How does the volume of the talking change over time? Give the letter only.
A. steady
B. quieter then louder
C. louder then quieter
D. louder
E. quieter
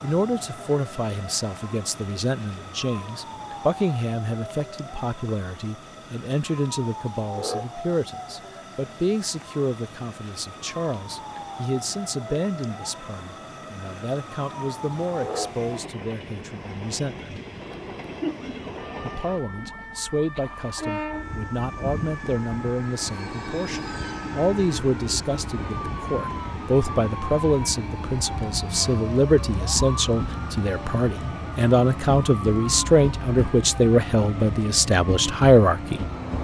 D.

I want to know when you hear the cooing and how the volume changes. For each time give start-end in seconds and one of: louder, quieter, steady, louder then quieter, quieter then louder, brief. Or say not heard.
not heard.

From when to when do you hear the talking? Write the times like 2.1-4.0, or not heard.
0.0-17.4, 19.0-36.0.